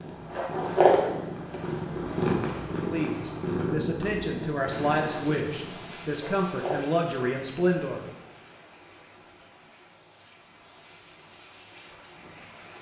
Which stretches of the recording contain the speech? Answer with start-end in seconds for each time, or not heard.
2.7-8.1.